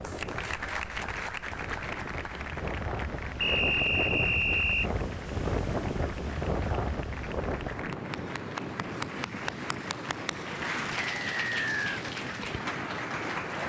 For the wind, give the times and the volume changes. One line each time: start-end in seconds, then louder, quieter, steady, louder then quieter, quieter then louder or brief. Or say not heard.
0.0-13.6 louder then quieter.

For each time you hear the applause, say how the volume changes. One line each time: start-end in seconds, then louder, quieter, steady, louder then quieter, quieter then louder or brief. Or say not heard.
0.0-13.6 quieter then louder.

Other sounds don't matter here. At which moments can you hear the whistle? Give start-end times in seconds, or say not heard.
3.4-4.9, 11.1-12.0.